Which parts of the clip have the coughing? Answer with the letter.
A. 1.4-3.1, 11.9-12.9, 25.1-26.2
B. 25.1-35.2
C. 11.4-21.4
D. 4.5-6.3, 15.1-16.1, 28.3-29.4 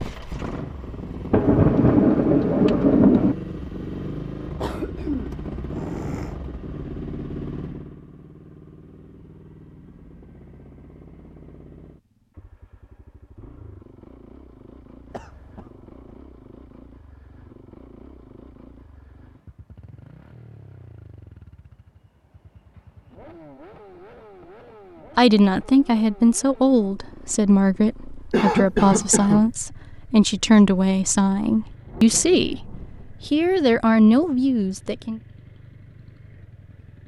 D.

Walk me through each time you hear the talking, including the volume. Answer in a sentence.
The talking can be heard from 25.1 to 35.2 s, at a steady volume.